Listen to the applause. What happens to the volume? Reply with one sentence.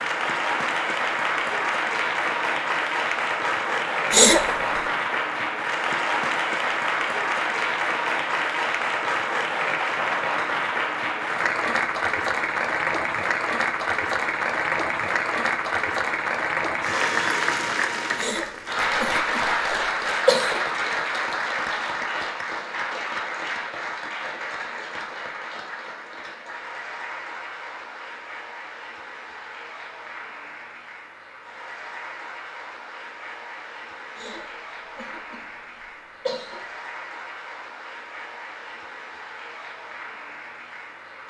The loudness of the applause goes down.